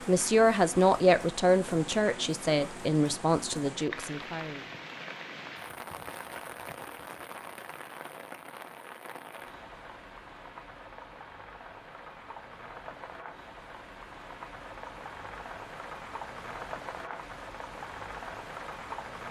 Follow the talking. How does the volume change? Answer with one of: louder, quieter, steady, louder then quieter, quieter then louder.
quieter.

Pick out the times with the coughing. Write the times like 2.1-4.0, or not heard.
not heard.